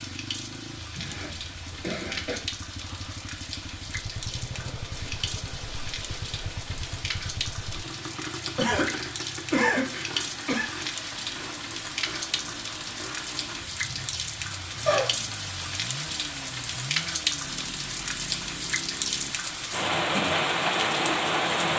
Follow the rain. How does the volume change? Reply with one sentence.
The volume of the rain goes up.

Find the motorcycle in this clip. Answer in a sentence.
The motorcycle can be heard from 0.0 to 19.4 s.